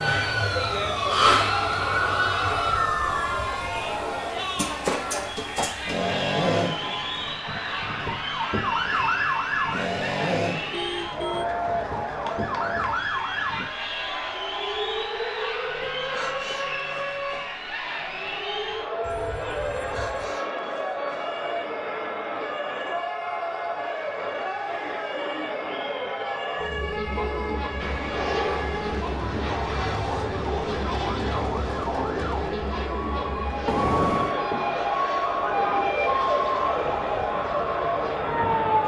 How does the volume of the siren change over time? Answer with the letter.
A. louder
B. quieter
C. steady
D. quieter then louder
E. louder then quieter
D.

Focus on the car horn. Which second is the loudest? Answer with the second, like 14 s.
34 s.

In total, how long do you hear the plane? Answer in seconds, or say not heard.
11 s.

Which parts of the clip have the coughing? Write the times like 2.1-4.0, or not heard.
not heard.